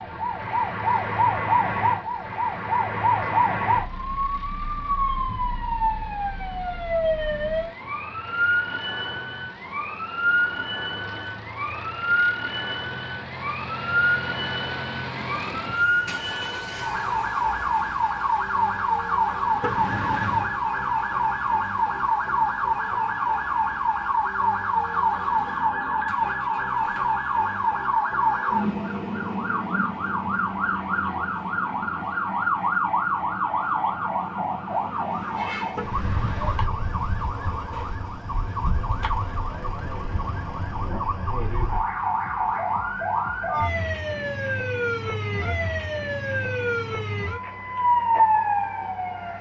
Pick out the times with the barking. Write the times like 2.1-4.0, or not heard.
not heard.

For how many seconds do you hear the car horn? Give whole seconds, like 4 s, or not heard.
2 s.